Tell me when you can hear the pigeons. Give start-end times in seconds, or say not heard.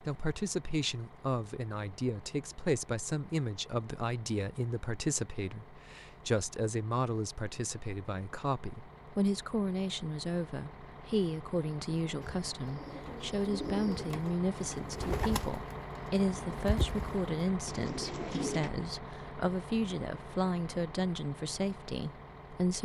12.2-18.7.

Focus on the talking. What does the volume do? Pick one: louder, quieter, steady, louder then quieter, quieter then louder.
steady.